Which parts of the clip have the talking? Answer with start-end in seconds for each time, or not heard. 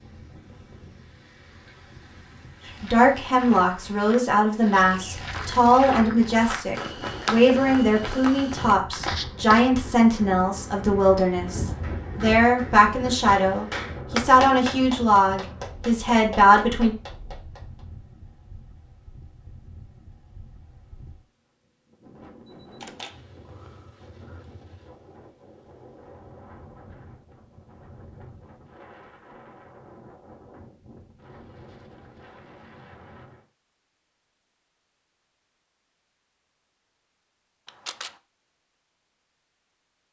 2.8-16.9.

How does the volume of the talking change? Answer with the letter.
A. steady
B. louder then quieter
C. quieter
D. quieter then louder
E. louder
A.